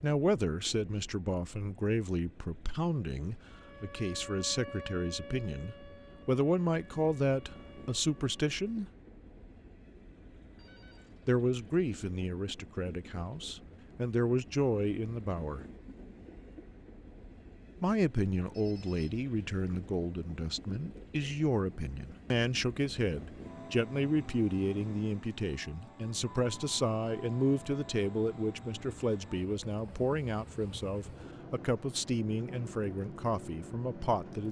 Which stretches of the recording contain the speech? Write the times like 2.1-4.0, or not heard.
0.0-8.8, 11.2-15.7, 17.8-34.4.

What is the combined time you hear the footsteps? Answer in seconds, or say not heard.
not heard.